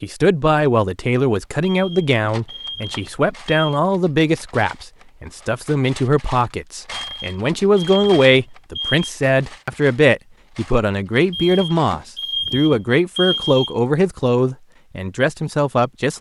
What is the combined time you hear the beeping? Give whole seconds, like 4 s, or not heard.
7 s.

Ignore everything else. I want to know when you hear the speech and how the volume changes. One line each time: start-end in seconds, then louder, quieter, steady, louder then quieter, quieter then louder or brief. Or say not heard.
0.0-16.1 steady.